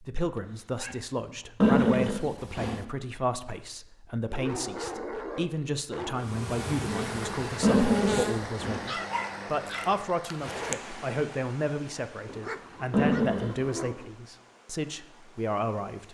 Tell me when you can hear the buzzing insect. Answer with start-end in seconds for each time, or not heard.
6.2-8.6.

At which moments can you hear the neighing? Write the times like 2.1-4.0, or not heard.
1.6-2.9, 7.6-8.8, 12.9-13.6.